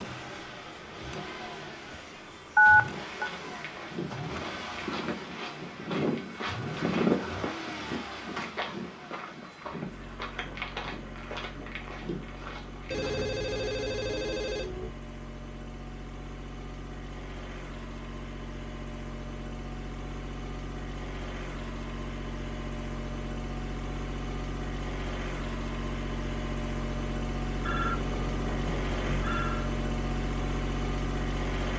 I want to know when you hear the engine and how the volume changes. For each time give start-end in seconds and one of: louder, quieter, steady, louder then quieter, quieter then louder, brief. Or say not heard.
0.0-31.7 louder.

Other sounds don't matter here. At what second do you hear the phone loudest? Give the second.
3 s.